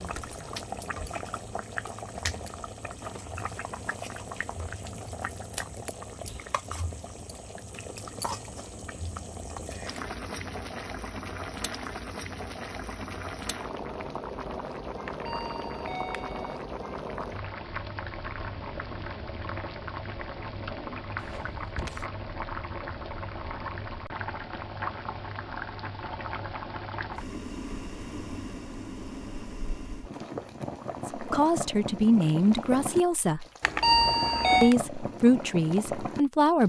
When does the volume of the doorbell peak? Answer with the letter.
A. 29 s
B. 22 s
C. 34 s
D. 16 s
C.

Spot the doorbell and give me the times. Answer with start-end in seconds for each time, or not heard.
15.1-16.6, 33.6-34.8.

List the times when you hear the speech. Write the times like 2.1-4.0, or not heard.
31.1-33.5, 34.6-36.6.